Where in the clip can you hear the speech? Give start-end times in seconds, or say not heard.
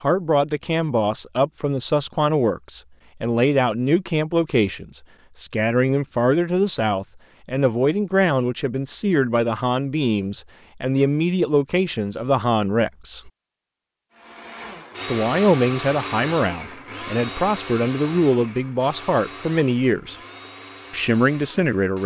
0.0-13.3, 15.1-20.1, 20.9-22.0.